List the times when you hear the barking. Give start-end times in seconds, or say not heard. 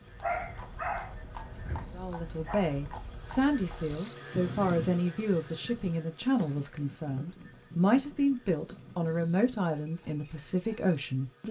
0.2-2.8.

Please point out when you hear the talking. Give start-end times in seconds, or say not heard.
1.9-11.4.